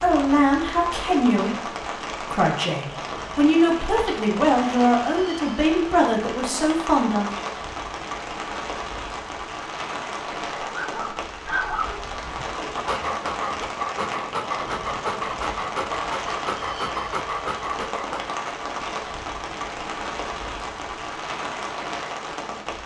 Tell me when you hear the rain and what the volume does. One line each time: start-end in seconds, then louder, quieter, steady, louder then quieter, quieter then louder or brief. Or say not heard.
0.0-22.8 steady.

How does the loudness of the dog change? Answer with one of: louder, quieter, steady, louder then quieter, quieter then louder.
steady.